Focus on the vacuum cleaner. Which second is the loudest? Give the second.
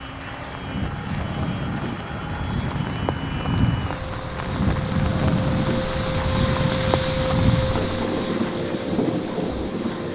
7 s.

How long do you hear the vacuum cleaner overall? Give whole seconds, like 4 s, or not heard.
10 s.